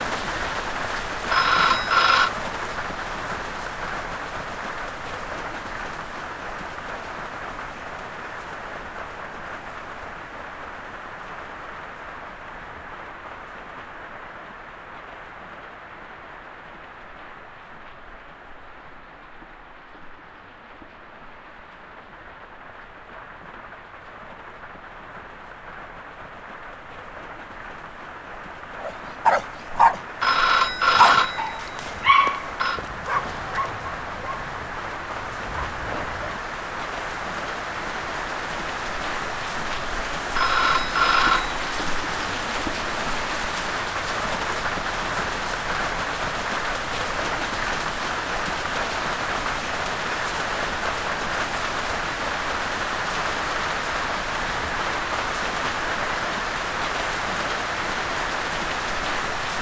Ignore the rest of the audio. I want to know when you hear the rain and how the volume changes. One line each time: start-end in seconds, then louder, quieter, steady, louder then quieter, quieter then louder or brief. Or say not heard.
0.0-59.5 quieter then louder.